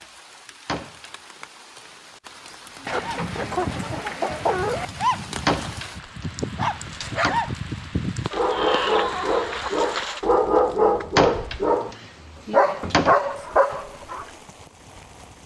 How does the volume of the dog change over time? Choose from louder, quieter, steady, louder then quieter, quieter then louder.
louder.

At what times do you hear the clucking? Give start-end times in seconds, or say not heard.
2.9-4.9, 8.3-10.2.